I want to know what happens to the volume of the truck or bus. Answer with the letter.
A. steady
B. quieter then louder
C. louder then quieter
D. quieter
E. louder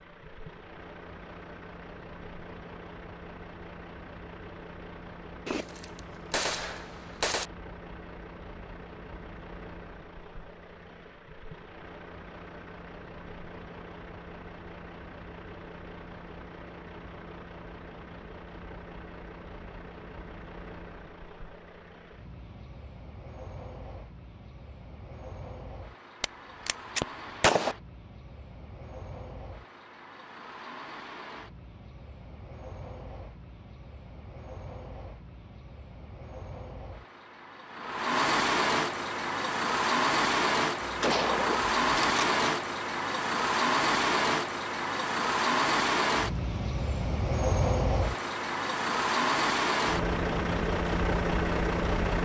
E.